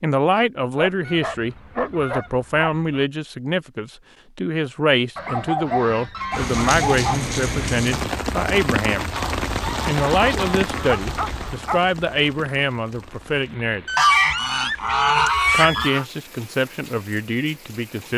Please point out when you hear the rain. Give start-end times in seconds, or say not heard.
6.3-18.1.